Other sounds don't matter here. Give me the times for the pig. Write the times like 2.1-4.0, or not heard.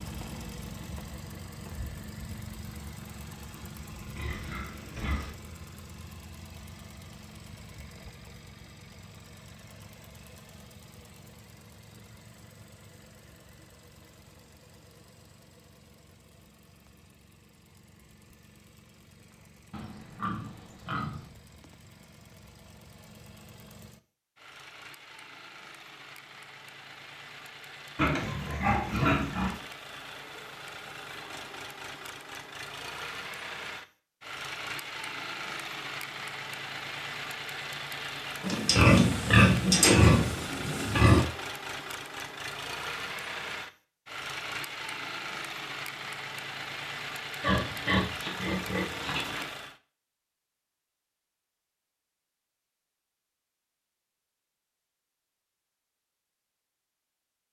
4.2-5.3, 19.7-21.3, 27.9-29.6, 38.4-41.2, 47.4-49.5.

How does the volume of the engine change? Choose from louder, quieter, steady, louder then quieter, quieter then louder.
quieter then louder.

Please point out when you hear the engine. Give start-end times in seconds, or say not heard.
0.0-49.8.